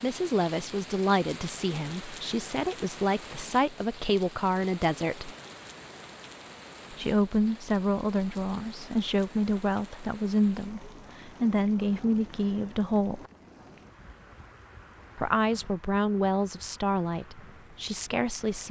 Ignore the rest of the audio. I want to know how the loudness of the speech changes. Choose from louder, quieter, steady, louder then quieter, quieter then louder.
steady.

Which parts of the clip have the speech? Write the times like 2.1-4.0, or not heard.
0.0-5.3, 6.9-13.2, 15.2-18.6.